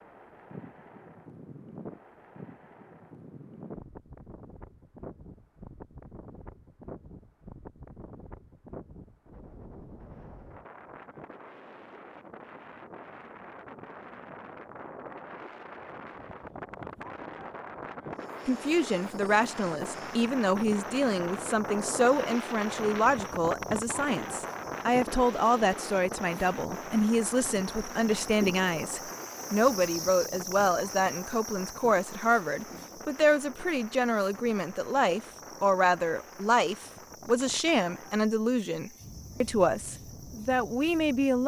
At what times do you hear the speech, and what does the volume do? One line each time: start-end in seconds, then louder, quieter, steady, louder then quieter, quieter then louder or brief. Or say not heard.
18.4-41.4 steady.